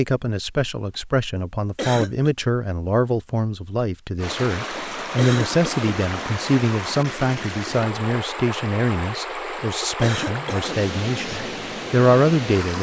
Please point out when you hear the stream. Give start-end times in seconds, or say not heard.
4.2-12.7.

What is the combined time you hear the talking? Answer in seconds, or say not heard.
13 s.